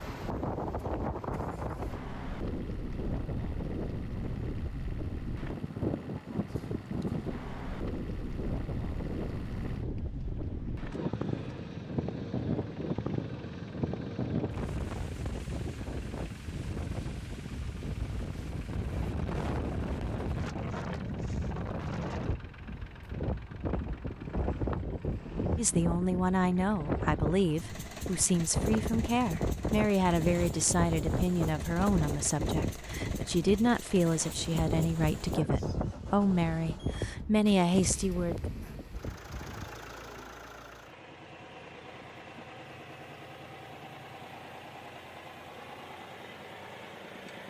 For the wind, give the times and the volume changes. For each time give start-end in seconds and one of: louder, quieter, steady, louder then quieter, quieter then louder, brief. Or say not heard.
0.0-39.7 steady.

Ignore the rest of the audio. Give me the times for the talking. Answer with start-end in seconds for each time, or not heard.
25.6-38.4.